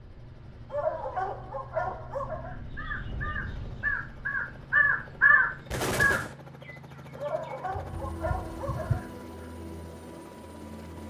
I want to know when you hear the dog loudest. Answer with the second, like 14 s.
1 s.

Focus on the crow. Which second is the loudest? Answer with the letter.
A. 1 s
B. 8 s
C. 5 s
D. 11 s
C.